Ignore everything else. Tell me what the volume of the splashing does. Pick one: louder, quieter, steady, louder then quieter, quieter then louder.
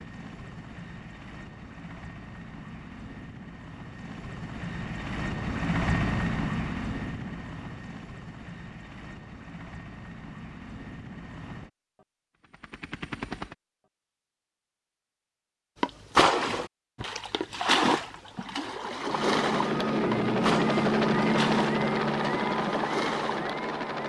quieter.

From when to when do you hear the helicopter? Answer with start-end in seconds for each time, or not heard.
0.0-13.6, 18.9-24.0.